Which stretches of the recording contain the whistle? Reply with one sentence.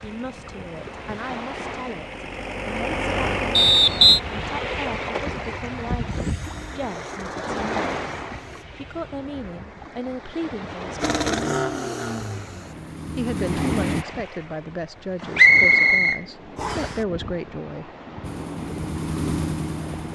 The whistle can be heard from 3.5 to 4.2 s and from 15.3 to 16.9 s.